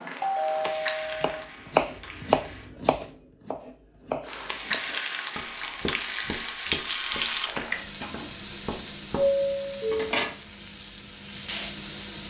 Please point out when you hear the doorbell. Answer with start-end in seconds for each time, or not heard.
0.2-1.4, 9.1-10.2.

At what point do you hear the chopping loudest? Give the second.
2 s.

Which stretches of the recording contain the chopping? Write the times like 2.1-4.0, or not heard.
0.7-9.3.